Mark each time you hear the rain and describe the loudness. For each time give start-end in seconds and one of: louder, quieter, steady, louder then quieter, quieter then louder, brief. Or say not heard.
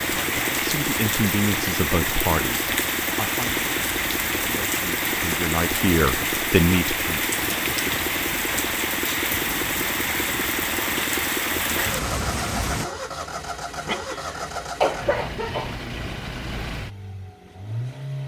0.0-12.9 steady.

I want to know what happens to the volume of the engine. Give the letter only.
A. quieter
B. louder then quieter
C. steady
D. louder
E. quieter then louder
C.